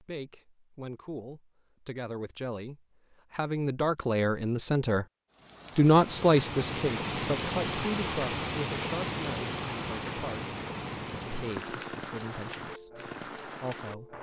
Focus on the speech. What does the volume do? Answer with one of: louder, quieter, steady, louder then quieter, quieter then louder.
louder then quieter.